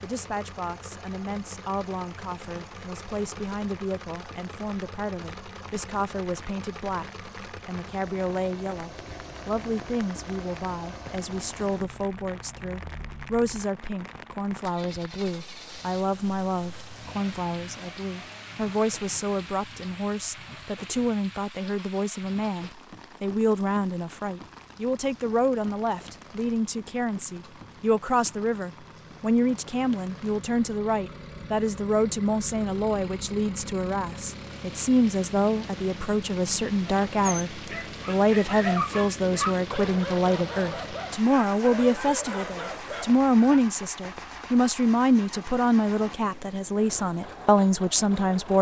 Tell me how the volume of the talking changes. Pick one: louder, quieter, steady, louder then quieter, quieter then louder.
louder.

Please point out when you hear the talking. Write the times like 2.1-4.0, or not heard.
0.0-48.5.